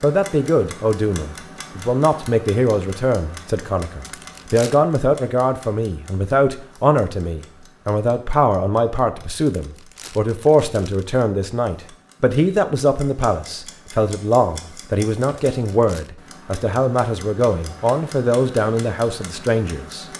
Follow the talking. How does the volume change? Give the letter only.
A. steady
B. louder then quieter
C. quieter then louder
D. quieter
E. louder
A.